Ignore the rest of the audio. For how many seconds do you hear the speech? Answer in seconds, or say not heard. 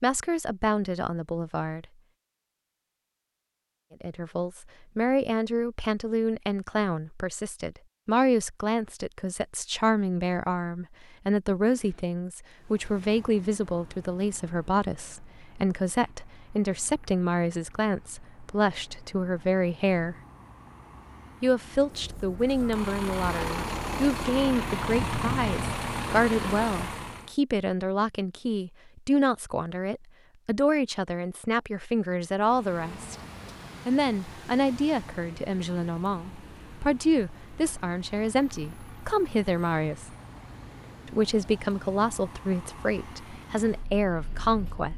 40 s.